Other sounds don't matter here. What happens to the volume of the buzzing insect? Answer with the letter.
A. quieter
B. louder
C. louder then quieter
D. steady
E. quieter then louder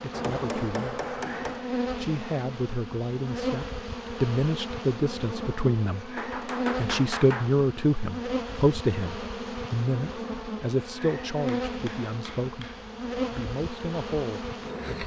D.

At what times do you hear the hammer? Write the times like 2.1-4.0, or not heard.
0.1-1.7, 6.2-7.5, 11.7-12.9.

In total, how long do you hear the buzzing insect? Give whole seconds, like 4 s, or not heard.
15 s.